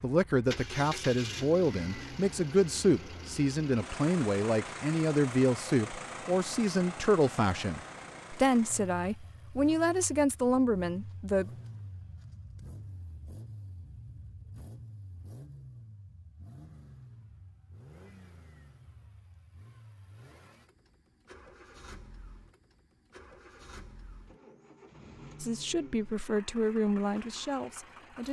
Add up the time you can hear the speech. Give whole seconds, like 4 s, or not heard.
14 s.